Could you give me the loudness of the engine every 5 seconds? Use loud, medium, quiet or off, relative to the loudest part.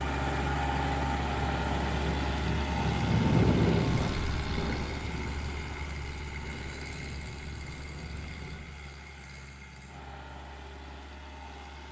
loud, medium, quiet.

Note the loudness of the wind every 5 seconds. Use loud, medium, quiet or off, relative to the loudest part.
loud, quiet, off.